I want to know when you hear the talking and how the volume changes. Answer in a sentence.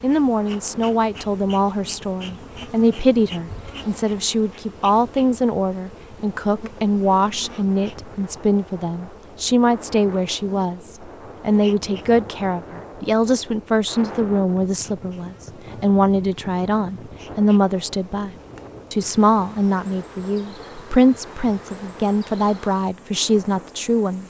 You can hear the talking from 0.0 to 24.2 s, at a steady volume.